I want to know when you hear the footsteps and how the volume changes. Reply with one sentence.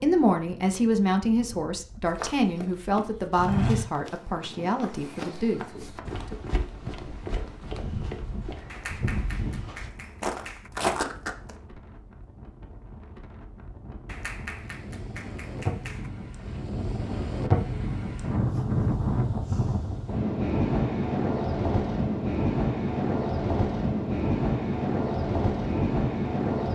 You can hear the footsteps from 2.1 to 11.6 s, getting quieter then louder.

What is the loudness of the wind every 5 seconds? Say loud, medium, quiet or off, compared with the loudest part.
quiet, quiet, quiet, loud, loud, loud.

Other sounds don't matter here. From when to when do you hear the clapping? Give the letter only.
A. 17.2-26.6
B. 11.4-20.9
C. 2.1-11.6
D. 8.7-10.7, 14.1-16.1
D.